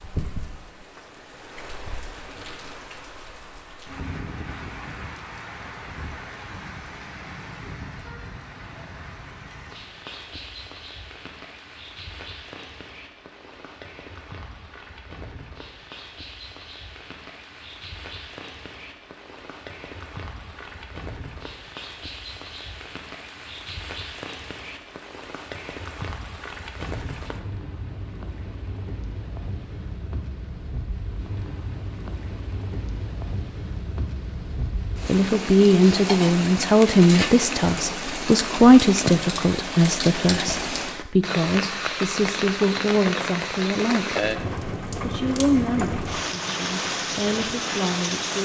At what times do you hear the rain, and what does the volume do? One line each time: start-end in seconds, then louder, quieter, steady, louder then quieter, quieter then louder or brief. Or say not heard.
0.0-48.4 louder.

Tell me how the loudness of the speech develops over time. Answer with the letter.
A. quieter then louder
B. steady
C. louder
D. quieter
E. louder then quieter
D.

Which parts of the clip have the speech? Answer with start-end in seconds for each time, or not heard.
35.0-44.2, 45.0-48.4.